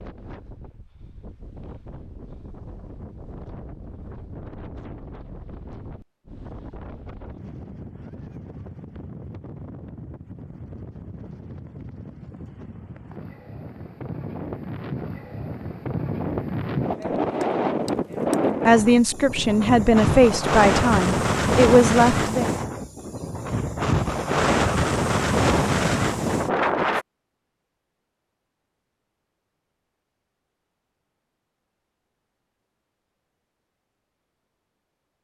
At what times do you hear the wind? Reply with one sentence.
The wind can be heard from 0.0 to 27.1 s.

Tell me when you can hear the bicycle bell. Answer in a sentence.
You can't hear the bicycle bell here.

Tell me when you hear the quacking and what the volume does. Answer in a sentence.
You can't hear the quacking here.